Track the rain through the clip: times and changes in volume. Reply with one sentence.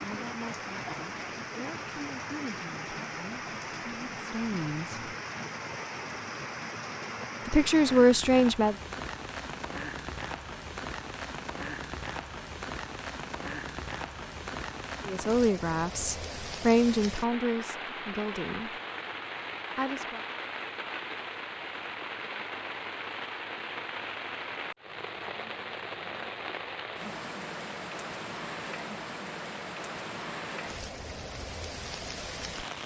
The rain can be heard from 0.0 to 32.8 s, at a steady volume.